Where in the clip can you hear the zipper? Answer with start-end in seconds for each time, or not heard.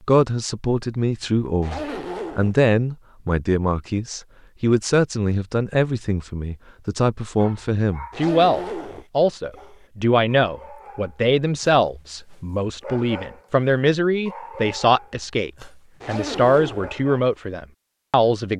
1.6-2.5, 8.1-9.1, 16.0-16.9.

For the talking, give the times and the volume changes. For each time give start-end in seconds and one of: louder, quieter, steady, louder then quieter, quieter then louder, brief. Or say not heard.
0.1-18.5 steady.